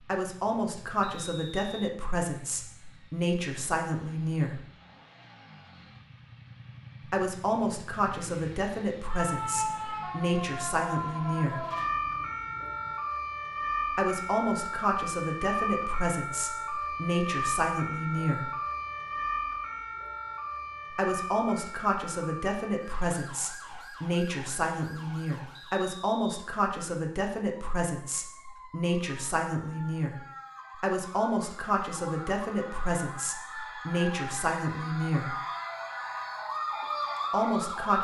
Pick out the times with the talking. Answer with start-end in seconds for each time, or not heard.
0.1-4.7, 7.1-11.7, 13.9-18.6, 20.9-35.4, 37.3-38.0.